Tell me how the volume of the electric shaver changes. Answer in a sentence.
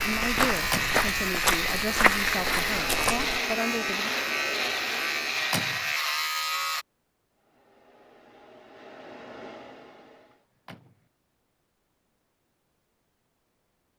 The volume of the electric shaver stays about the same.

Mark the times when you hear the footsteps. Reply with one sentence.
You can hear the footsteps from 0.0 to 3.4 s.